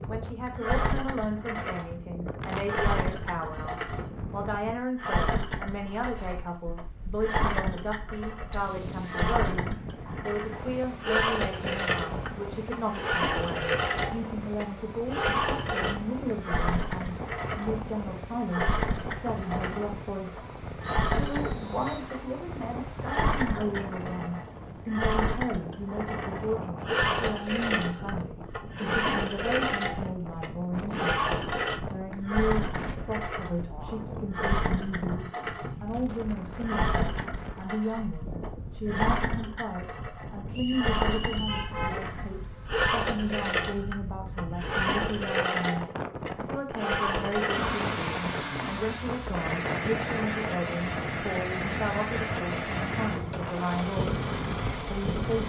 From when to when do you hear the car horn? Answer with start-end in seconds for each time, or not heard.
41.5-42.9.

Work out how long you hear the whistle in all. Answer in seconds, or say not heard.
3 s.